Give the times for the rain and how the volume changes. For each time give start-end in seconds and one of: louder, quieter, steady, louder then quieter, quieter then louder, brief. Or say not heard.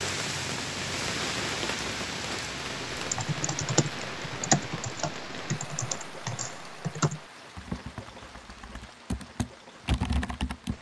0.0-10.7 quieter.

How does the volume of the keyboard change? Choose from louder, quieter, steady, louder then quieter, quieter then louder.
quieter then louder.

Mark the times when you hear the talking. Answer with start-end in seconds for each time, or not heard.
not heard.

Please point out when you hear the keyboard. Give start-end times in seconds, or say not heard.
3.0-10.7.